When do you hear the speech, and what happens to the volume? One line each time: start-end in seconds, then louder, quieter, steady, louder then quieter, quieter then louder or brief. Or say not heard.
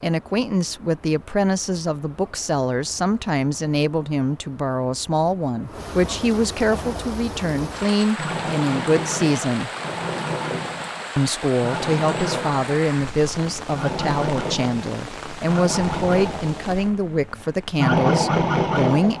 0.0-9.7 steady
11.2-19.1 steady.